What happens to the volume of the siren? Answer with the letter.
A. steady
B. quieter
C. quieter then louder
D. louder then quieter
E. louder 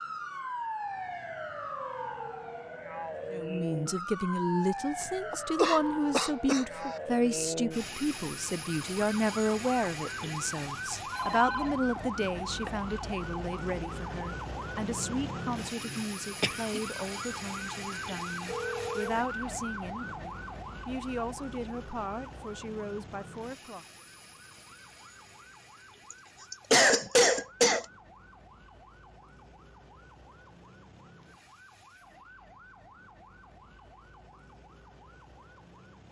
B.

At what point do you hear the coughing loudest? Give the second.
27 s.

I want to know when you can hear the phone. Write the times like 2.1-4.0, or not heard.
11.1-12.8, 18.4-19.2.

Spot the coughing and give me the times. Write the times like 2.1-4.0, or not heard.
5.3-6.7, 15.8-16.8, 26.1-27.9.